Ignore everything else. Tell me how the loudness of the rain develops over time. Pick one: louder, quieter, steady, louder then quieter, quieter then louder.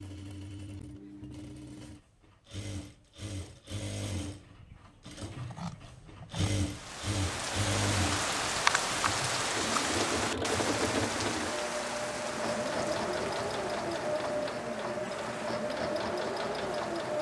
quieter.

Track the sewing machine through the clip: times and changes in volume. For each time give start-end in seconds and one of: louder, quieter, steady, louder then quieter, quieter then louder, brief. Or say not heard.
0.0-17.1 louder.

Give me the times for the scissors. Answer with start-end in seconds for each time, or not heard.
5.4-6.5.